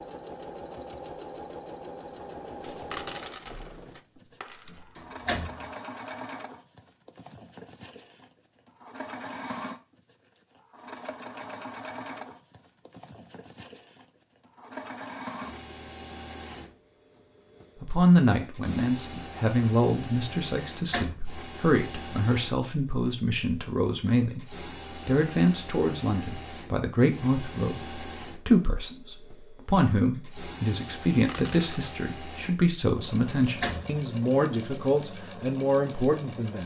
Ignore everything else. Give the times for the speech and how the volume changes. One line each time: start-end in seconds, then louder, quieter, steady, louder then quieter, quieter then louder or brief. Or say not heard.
17.8-36.6 steady.